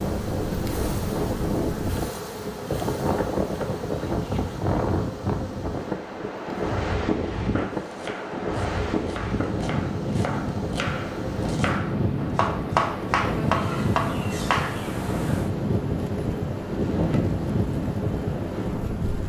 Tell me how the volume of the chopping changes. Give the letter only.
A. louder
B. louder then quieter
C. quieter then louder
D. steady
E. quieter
A.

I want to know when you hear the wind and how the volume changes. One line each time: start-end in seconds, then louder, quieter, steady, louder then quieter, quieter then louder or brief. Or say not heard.
0.0-19.2 steady.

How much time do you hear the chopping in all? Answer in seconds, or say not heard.
7 s.